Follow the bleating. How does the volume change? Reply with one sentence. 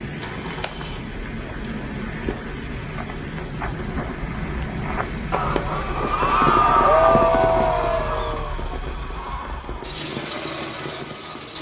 The volume of the bleating goes up, then down.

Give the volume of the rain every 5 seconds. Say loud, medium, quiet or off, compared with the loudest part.
loud, loud, medium.